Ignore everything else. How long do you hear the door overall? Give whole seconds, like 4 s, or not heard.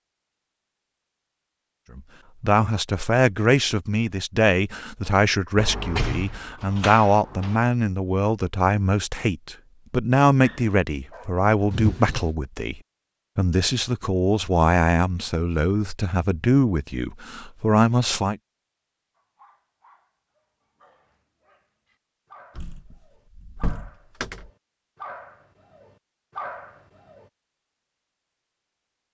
5 s.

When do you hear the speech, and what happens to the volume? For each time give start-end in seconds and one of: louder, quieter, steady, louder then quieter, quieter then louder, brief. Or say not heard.
1.9-18.4 steady.